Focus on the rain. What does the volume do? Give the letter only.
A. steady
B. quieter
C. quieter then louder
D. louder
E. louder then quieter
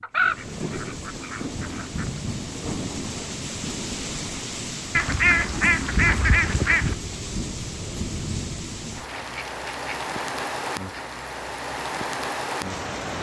A.